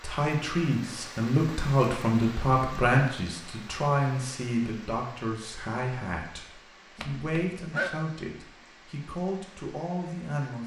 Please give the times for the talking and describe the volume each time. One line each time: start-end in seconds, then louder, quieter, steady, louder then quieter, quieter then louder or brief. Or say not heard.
0.0-10.6 quieter.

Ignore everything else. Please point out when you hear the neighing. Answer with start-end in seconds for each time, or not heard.
7.0-7.9.